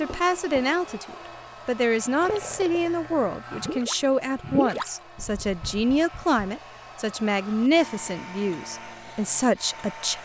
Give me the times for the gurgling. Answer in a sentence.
You can hear the gurgling from 2.2 to 5.6 s.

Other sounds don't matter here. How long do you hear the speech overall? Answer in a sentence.
The speech can be heard for 10 seconds in total.